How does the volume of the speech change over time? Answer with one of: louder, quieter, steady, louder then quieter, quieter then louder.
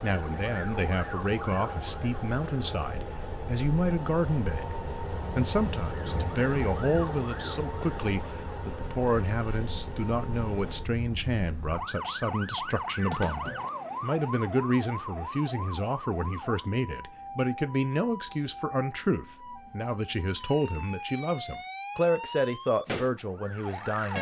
steady.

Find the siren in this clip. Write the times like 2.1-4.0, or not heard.
0.0-24.1.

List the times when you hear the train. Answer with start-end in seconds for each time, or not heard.
0.0-10.9.